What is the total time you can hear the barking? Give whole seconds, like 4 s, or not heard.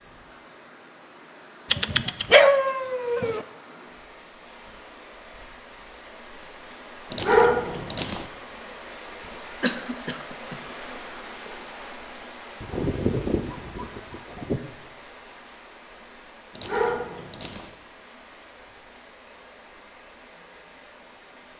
6 s.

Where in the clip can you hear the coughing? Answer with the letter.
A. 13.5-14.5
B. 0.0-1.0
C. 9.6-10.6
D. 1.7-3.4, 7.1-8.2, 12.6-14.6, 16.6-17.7
C.